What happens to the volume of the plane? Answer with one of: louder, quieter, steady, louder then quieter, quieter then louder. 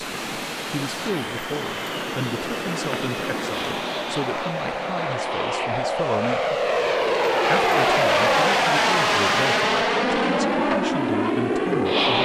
louder.